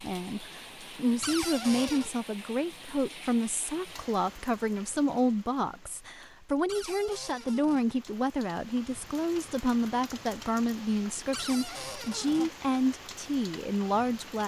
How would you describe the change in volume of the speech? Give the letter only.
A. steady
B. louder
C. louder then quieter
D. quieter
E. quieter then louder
A.